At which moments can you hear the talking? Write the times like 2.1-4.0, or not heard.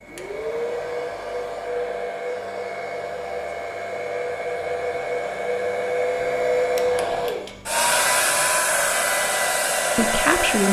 9.9-10.6.